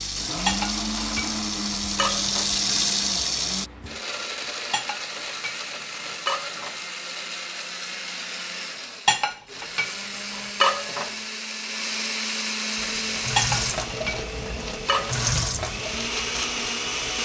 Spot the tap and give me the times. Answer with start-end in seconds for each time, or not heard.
0.0-3.7, 12.8-17.2.